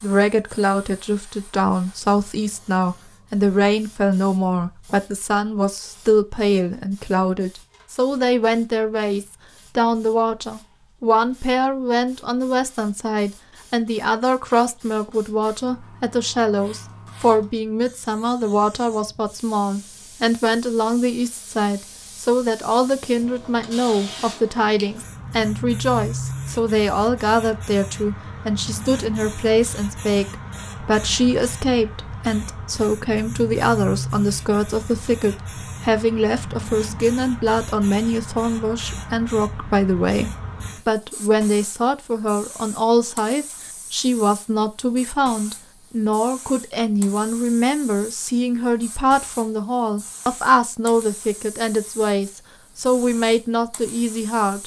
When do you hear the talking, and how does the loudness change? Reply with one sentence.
The talking can be heard from 0.0 to 54.6 s, at a steady volume.